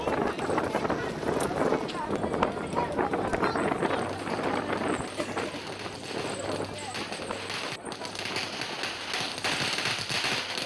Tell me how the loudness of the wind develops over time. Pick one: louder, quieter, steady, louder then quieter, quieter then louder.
quieter.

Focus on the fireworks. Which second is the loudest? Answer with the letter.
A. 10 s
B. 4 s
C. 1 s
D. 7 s
A.